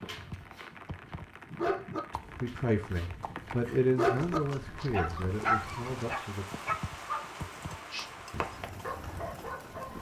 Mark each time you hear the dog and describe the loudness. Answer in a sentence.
The dog can be heard briefly from 0.0 to 0.7 s; and from 1.5 to 9.9 s, getting louder then quieter.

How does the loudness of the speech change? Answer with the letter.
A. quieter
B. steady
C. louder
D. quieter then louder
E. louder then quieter
E.